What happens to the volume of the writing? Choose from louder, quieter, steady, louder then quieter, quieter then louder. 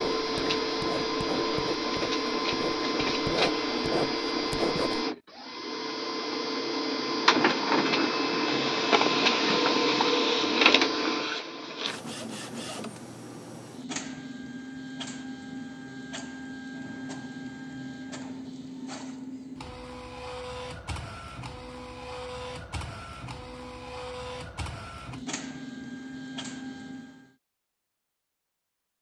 louder.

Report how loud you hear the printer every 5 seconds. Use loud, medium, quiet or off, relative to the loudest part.
loud, loud, loud, quiet, quiet, quiet.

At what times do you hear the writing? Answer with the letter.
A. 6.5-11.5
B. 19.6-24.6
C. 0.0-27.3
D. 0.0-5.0
D.